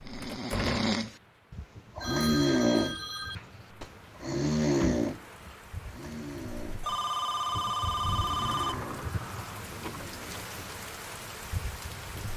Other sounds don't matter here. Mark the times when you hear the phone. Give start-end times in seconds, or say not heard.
1.9-3.4, 6.8-8.8.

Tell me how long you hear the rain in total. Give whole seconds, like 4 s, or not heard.
12 s.